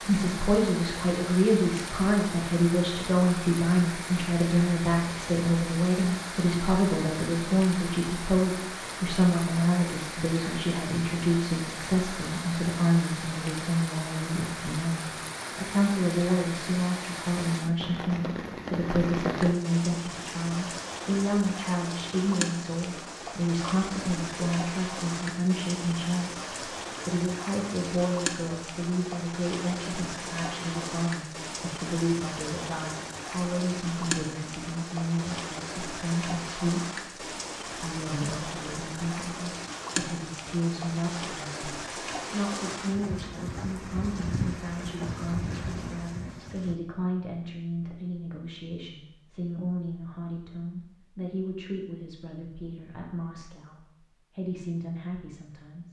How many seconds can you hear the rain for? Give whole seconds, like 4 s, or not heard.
47 s.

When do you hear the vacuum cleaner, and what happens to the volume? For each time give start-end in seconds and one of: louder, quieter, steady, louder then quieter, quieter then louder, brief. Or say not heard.
not heard.